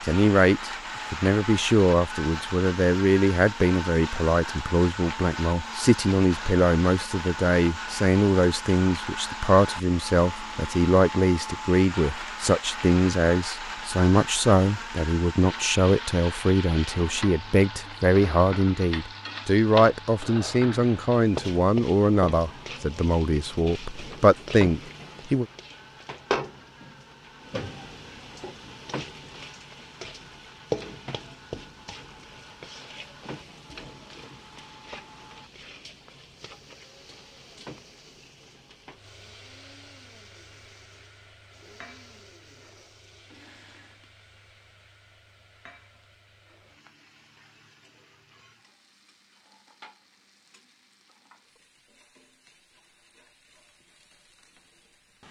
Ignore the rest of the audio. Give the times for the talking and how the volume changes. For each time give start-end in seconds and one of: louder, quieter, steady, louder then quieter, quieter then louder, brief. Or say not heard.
0.0-25.4 steady.